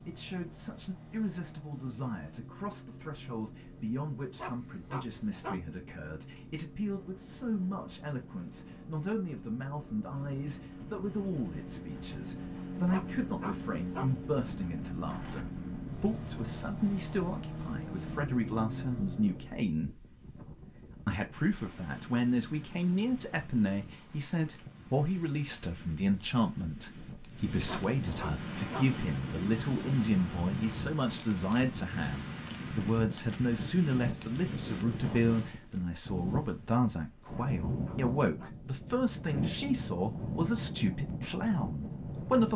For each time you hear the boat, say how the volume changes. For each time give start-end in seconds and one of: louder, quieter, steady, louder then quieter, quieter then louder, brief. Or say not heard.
0.0-19.6 louder.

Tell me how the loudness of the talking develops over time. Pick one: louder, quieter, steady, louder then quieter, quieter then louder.
louder.